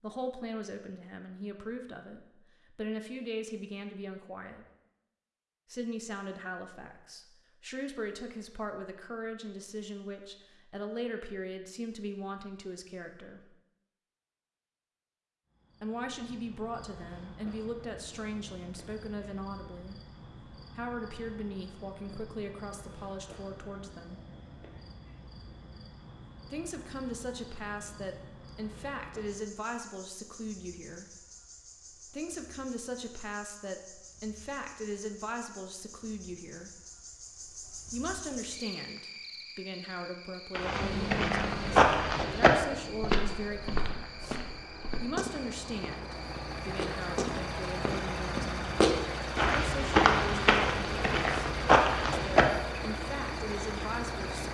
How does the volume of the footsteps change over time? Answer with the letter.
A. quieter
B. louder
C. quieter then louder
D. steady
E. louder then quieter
C.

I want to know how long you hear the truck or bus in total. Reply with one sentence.
The truck or bus can be heard for 14 seconds in total.